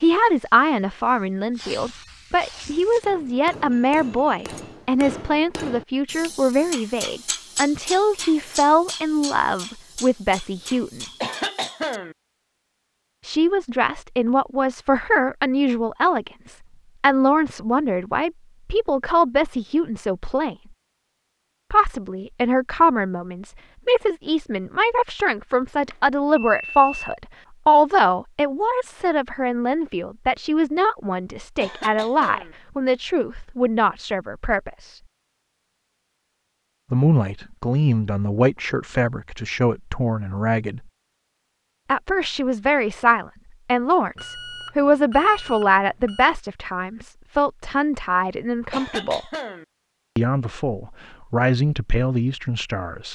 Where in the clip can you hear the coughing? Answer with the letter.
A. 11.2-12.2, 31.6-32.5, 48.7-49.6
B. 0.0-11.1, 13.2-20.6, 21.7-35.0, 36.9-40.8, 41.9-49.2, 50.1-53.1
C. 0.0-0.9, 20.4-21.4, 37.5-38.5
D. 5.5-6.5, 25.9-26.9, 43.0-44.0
A.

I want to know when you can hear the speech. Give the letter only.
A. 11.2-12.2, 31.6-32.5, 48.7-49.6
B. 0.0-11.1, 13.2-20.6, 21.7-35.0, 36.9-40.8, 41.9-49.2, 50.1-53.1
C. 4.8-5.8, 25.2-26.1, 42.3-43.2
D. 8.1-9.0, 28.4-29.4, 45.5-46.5
B.